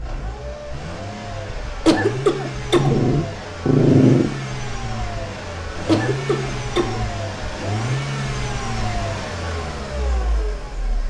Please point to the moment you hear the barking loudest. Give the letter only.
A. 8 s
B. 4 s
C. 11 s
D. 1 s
B.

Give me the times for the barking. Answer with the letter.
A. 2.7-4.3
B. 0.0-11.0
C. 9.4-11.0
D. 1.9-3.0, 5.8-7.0
A.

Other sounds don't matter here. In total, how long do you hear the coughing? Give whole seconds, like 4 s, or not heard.
2 s.